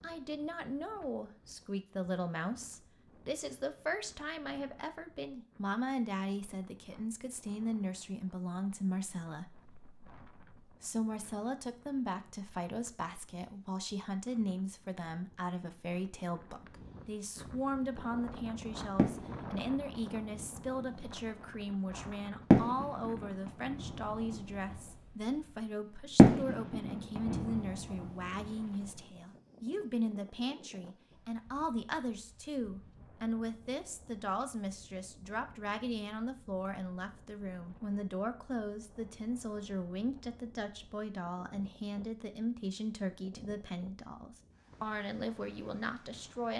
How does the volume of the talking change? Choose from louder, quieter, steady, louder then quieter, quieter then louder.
steady.